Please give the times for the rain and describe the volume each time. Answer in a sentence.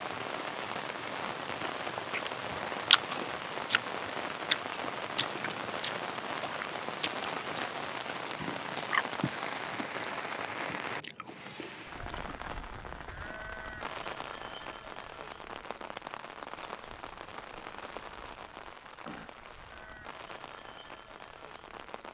The rain can be heard from 0.0 to 22.0 s, getting quieter.